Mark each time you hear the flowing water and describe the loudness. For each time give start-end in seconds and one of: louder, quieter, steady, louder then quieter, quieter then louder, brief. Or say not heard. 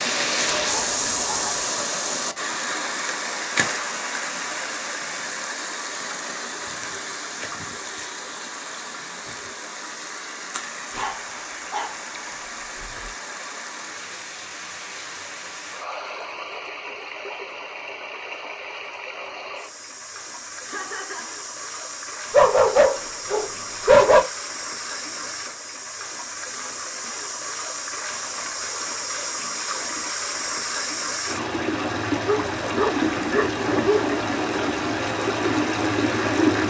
0.0-36.6 quieter then louder.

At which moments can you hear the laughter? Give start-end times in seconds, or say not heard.
20.6-21.4.